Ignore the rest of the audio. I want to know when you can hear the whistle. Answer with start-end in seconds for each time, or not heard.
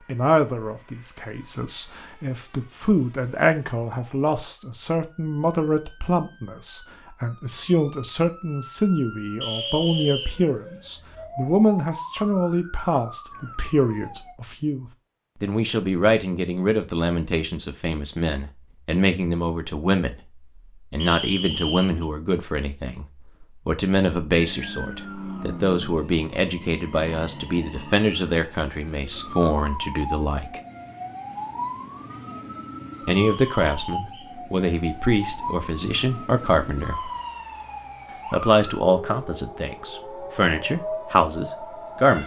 9.4-10.3, 20.9-22.1, 33.1-34.4.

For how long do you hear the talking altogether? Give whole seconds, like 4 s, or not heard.
38 s.